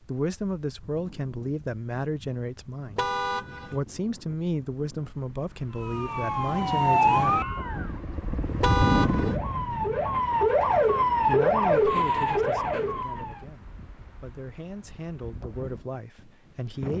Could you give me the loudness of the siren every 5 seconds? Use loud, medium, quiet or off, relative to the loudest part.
off, loud, loud, off.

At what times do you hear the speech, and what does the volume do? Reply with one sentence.
The speech can be heard from 0.0 to 7.5 s, at a steady volume; and from 11.2 to 16.9 s, getting quieter then louder.